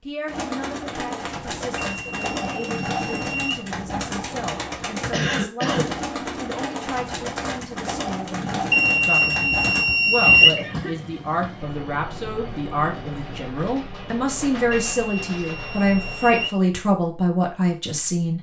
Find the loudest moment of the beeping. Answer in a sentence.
The loudest moment of the beeping is at 10 seconds.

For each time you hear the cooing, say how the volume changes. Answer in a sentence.
You can hear the cooing from 0.2 to 9.8 s, at a steady volume.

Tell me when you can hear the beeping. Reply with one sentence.
The beeping can be heard from 1.8 to 3.6 s, from 8.7 to 10.6 s and from 14.7 to 16.6 s.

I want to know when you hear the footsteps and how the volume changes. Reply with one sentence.
The footsteps can't be heard in this clip.